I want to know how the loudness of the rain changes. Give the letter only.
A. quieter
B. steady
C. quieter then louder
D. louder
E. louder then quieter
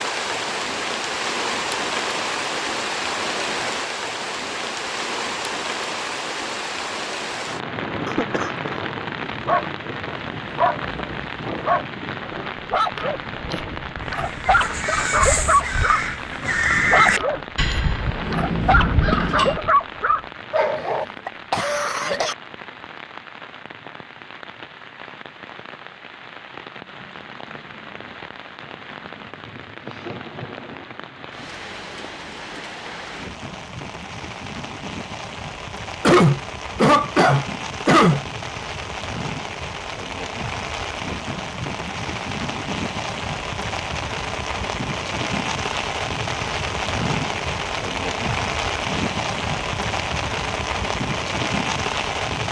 C.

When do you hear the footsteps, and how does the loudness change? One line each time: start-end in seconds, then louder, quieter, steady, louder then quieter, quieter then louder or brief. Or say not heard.
not heard.